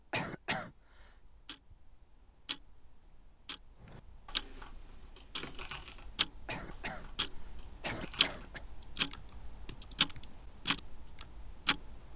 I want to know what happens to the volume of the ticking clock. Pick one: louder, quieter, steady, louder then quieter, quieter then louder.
louder.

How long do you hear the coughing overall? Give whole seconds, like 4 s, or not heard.
3 s.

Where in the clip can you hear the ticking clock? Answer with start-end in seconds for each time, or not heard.
0.0-12.1.